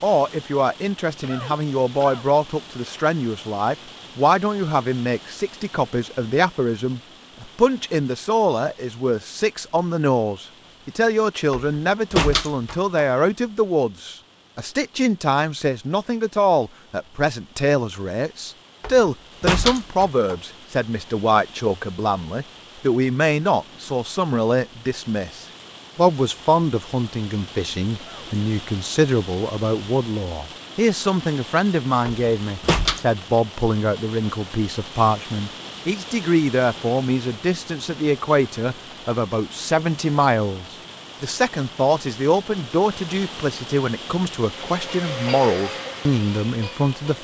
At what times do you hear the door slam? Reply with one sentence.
The door slam can be heard from 11.5 to 12.8 s, from 18.8 to 20.4 s and from 32.0 to 33.0 s.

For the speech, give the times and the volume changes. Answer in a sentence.
The speech can be heard from 0.0 to 47.1 s, at a steady volume.